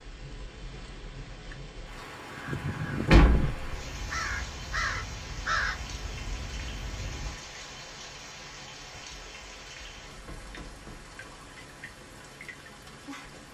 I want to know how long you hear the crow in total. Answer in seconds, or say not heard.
5 s.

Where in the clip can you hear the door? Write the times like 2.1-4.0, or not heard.
3.1-3.8.